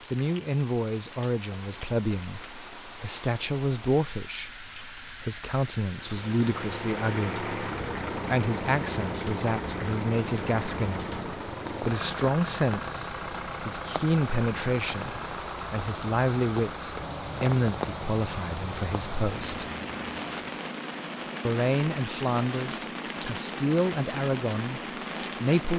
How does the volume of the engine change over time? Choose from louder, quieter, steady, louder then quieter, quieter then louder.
quieter.